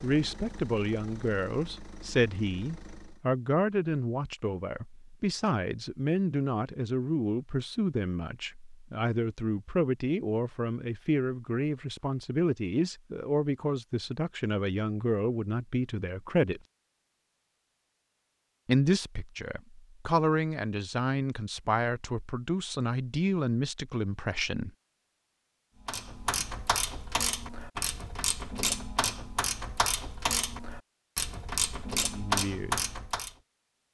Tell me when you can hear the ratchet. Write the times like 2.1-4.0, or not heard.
25.9-33.4.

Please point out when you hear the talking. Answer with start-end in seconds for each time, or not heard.
0.0-16.6, 18.6-24.7, 32.1-32.8.